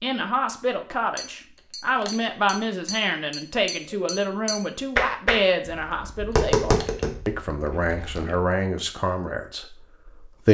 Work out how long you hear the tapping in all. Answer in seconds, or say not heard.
7 s.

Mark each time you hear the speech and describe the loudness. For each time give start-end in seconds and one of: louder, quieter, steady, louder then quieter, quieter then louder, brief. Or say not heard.
0.0-10.4 steady.